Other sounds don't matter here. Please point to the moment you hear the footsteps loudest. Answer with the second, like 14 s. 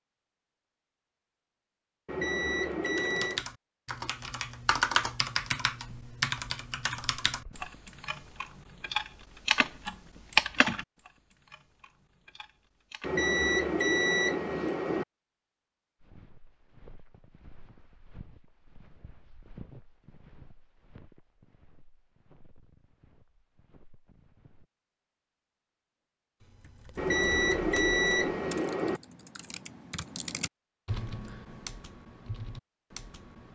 20 s.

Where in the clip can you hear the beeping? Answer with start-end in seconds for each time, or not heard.
2.0-3.5, 13.0-15.1, 26.9-29.0.